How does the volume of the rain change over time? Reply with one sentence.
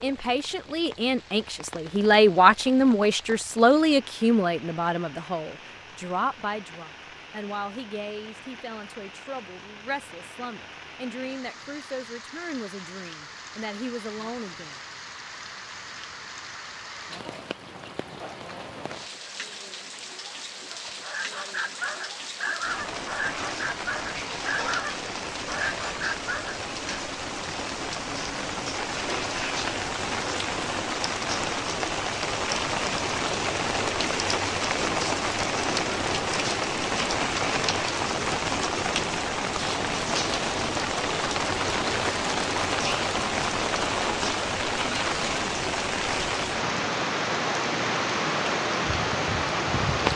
The volume of the rain goes up.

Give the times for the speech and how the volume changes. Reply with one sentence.
The speech can be heard from 0.0 to 14.8 s, getting quieter.